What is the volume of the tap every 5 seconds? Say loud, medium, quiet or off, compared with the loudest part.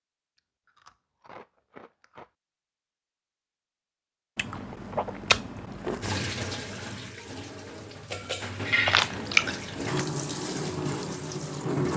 off, loud, loud.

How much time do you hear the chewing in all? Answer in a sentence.
The chewing can be heard for 5 seconds in total.